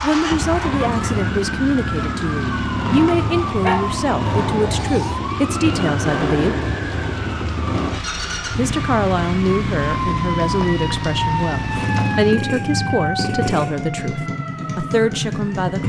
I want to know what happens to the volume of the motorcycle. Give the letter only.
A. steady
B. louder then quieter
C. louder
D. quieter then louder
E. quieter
A.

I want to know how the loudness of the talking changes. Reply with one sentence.
The loudness of the talking stays about the same.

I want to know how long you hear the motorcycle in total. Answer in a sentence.
The motorcycle can be heard for 16 seconds in total.